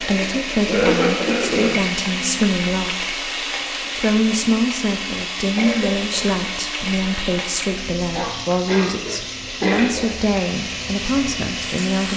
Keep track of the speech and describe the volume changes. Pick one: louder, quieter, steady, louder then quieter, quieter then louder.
steady.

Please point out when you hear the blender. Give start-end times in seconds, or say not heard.
0.0-12.1.